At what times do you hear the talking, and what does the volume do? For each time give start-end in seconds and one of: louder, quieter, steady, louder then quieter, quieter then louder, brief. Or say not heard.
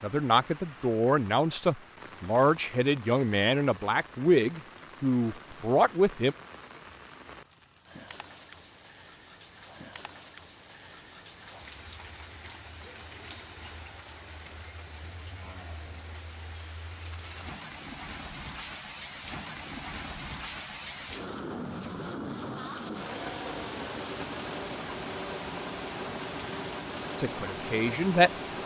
0.0-6.3 steady
27.1-28.3 brief.